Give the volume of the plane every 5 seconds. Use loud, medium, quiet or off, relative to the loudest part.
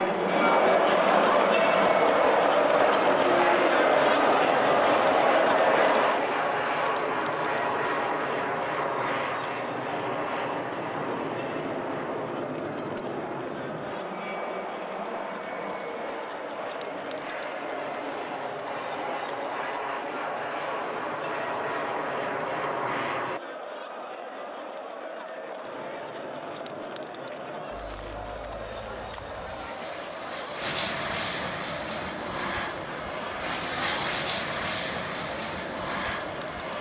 loud, loud, medium, medium, medium, quiet, medium, medium.